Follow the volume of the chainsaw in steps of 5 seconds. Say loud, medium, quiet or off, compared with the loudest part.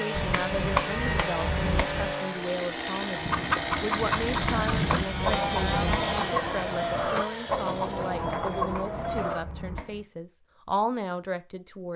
loud, loud, off.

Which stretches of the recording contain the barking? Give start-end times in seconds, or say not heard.
not heard.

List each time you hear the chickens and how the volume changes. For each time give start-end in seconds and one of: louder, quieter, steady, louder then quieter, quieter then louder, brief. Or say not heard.
3.1-9.4 steady.